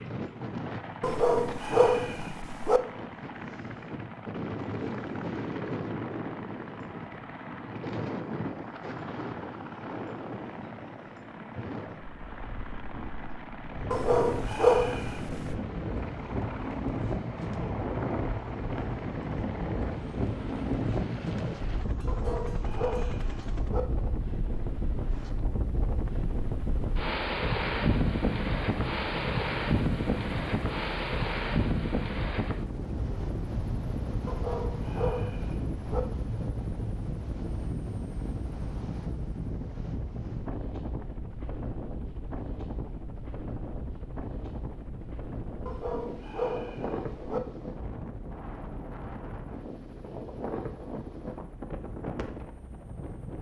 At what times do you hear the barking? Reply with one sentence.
The barking can be heard from 1.0 to 2.8 s, from 13.9 to 15.6 s, from 22.1 to 23.9 s, from 34.2 to 36.0 s and from 45.6 to 47.4 s.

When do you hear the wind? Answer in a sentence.
The wind can be heard from 0.0 to 53.3 s.